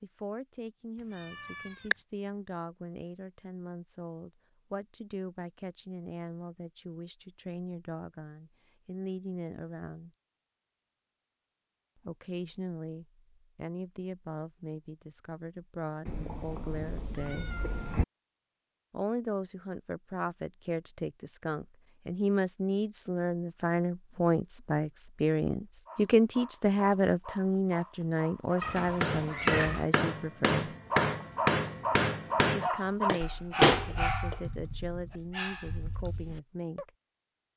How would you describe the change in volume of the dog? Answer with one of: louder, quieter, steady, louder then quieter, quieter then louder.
louder then quieter.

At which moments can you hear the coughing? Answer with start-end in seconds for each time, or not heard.
not heard.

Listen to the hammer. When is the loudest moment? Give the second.
34 s.